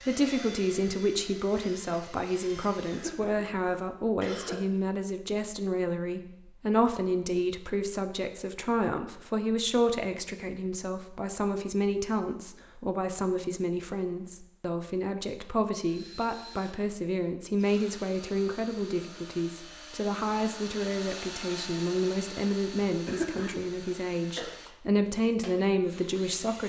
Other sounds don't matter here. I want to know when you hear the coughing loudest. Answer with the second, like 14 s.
23 s.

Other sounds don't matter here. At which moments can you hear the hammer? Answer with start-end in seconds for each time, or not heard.
not heard.